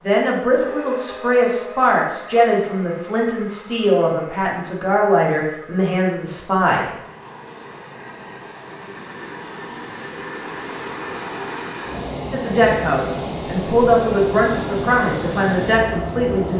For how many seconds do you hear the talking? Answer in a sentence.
You can hear the talking for 11 seconds altogether.